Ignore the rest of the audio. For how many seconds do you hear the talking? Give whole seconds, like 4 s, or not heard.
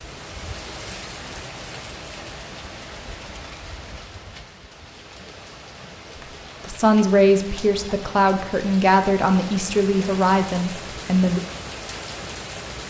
5 s.